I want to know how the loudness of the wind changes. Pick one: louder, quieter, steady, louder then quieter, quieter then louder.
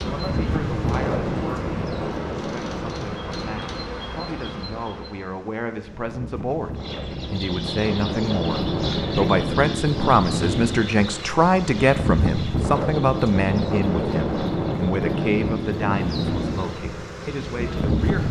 quieter then louder.